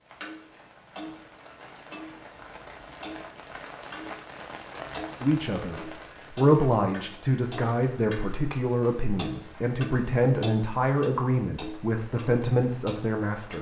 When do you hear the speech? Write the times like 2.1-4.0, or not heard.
5.2-13.5.